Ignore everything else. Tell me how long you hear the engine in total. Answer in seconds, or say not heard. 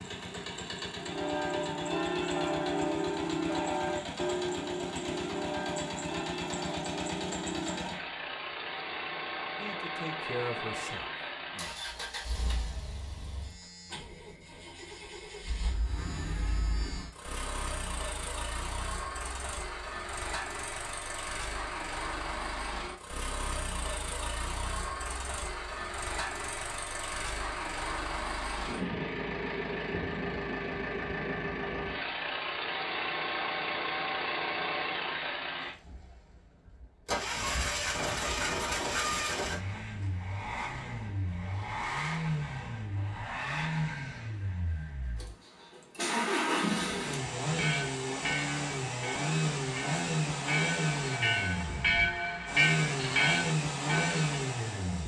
55 s.